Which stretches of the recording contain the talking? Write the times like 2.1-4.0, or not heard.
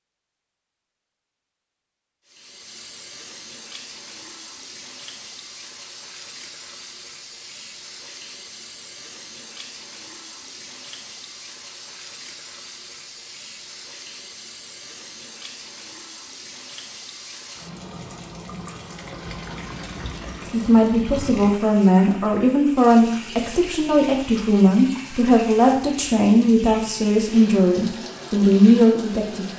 20.5-29.4.